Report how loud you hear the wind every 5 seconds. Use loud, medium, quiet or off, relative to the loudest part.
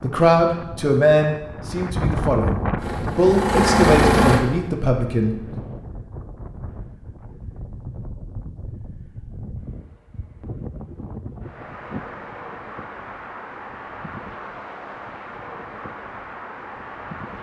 loud, medium, medium, medium.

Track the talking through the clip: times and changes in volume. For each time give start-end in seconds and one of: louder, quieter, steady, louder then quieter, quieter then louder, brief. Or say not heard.
0.0-5.6 quieter then louder.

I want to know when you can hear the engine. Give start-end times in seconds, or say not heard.
2.8-4.5.